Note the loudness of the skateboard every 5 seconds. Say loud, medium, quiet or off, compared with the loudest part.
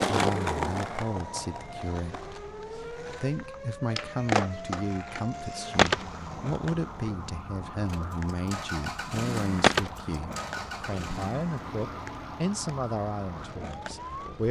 loud, loud, quiet.